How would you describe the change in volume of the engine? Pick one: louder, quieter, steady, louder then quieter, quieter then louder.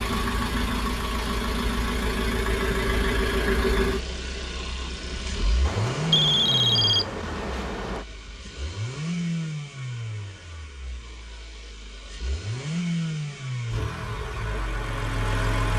quieter then louder.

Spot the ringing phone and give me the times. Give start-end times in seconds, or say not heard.
5.7-8.1.